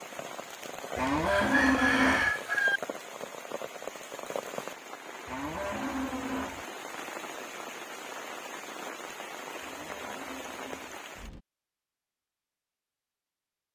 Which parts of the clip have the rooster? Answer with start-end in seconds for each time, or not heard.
1.2-2.8.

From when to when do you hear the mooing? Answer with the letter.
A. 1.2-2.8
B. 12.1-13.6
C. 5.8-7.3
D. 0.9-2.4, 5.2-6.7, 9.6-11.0
D.